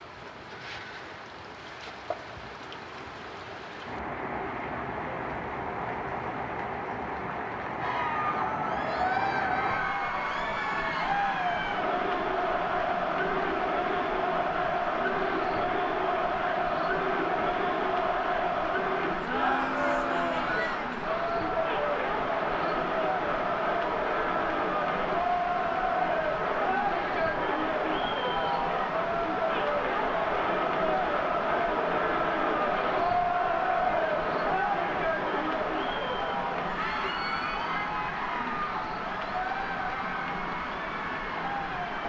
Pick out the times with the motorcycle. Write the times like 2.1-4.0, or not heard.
not heard.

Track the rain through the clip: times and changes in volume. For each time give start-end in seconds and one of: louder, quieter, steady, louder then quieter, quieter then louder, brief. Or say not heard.
0.0-42.0 steady.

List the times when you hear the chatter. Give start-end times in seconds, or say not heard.
7.8-42.0.